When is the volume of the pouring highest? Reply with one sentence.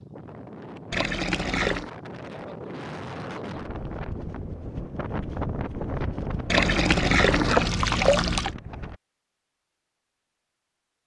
The volume of the pouring peaks at 7 seconds.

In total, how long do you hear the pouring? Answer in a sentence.
The pouring can be heard for 3 seconds in total.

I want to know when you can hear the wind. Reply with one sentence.
The wind can be heard from 0.0 to 9.0 s.